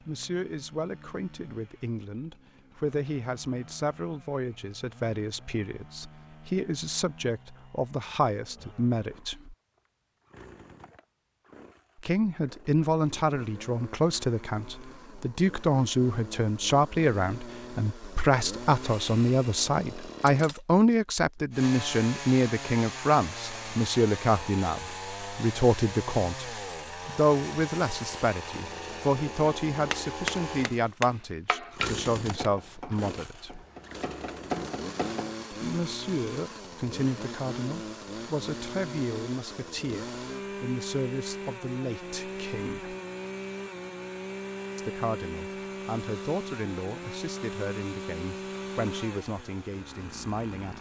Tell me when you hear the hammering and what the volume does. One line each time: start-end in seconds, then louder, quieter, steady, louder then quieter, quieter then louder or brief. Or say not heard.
29.9-35.4 quieter then louder.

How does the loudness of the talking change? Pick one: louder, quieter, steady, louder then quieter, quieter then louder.
louder then quieter.